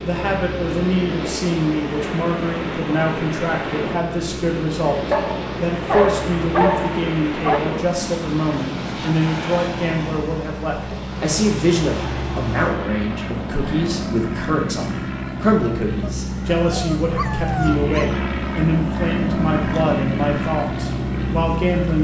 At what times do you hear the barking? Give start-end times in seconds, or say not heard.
5.1-7.6, 16.0-18.2.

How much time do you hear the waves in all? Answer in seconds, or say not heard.
14 s.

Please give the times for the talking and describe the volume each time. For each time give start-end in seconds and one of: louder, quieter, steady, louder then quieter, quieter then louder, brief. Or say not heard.
0.0-21.9 steady.